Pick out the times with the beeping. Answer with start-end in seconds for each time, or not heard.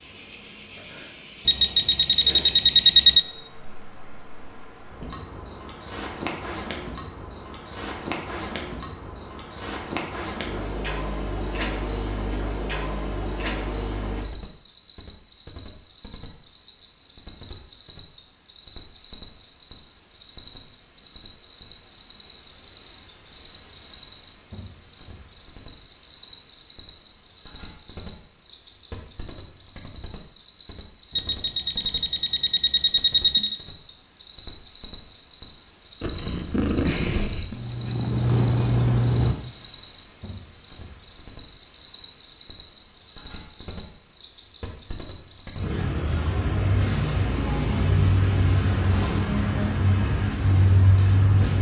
1.4-3.2, 31.1-33.6.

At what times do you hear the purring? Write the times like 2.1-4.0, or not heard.
36.0-39.4.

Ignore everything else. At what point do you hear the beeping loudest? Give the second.
3 s.